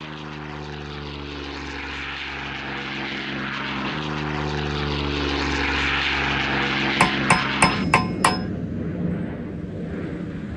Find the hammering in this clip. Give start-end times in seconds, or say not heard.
7.0-8.4.